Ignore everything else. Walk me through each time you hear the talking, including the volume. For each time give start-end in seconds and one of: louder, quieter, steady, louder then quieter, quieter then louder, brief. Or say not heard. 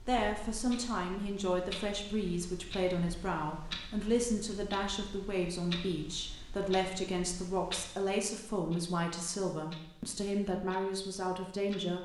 0.1-11.9 steady.